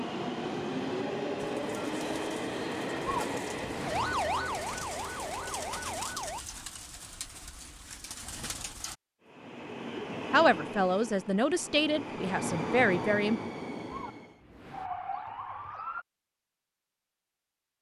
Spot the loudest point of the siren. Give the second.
4 s.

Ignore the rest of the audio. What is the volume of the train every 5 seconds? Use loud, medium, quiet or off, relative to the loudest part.
loud, medium, loud, off.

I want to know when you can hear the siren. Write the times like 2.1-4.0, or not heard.
3.0-6.4, 13.9-16.1.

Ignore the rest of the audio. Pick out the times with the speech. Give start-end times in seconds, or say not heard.
10.3-13.4.